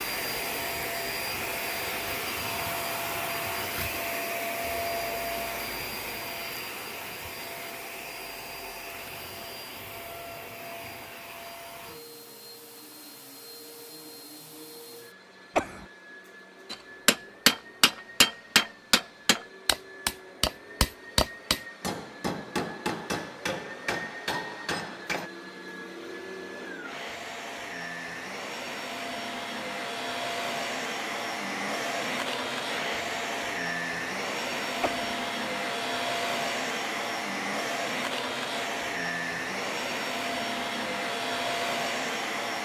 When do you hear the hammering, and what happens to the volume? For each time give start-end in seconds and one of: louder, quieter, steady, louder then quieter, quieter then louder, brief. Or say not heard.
16.7-25.3 quieter.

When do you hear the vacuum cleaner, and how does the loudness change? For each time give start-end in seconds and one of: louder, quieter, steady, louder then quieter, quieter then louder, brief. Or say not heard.
0.0-42.5 quieter then louder.